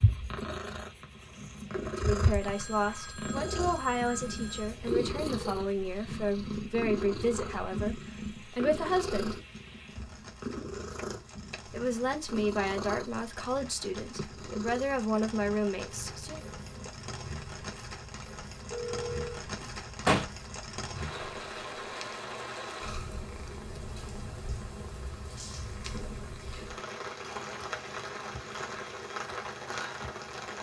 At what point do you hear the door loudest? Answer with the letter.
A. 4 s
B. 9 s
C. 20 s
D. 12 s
C.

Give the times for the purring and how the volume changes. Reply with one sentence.
You can hear the purring from 0.0 to 30.5 s, getting quieter.